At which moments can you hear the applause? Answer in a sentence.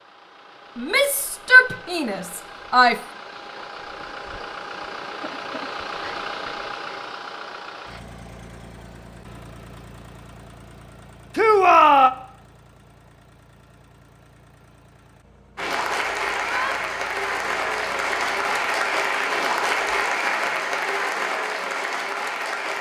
You can hear the applause from 15.6 to 22.7 s.